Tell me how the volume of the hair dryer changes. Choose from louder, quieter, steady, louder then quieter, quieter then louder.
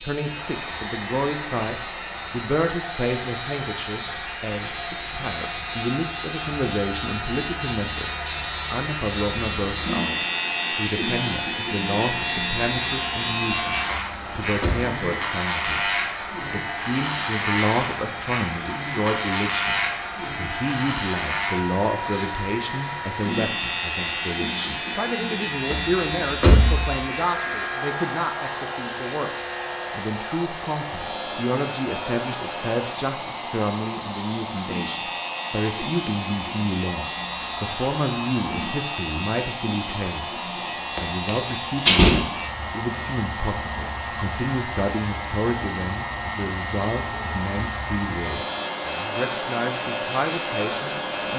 steady.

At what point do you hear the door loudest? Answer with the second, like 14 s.
42 s.